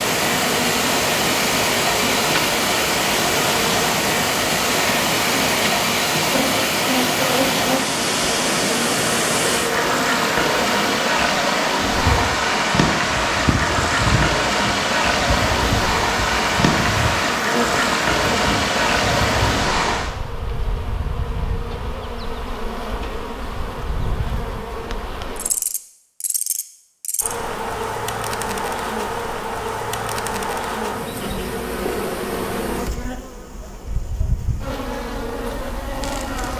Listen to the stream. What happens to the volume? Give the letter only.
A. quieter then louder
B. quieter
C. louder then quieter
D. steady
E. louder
D.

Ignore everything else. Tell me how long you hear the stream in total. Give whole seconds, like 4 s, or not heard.
20 s.